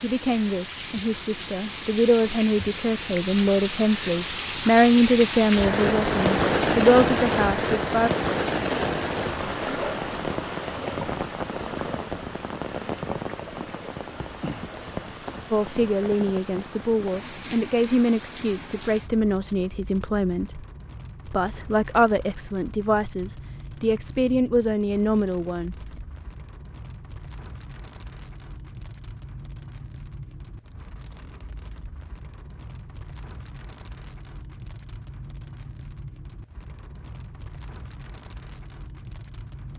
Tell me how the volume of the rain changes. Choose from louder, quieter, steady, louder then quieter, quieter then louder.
quieter.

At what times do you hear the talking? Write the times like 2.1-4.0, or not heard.
0.0-8.1, 15.5-20.6, 21.2-25.8.